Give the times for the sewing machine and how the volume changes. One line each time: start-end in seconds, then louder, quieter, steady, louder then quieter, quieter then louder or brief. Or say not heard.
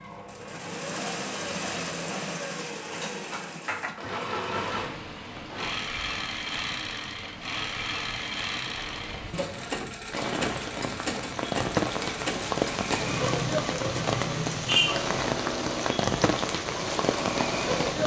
0.0-18.0 steady.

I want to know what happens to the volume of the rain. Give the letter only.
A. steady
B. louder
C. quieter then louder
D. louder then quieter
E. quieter
B.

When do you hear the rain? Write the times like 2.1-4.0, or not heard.
4.6-18.0.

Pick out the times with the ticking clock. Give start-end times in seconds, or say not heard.
not heard.